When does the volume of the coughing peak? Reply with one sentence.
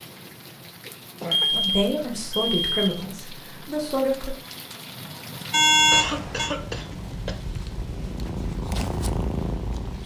The loudest moment of the coughing is at 6 seconds.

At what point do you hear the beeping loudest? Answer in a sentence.
The volume of the beeping peaks at 6 seconds.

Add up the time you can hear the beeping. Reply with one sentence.
You can hear the beeping for 3 seconds altogether.